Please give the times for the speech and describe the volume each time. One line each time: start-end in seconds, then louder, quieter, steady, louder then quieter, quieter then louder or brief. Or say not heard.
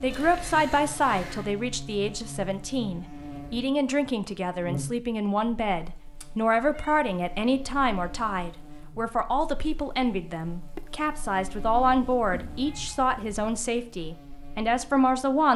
0.0-15.5 steady.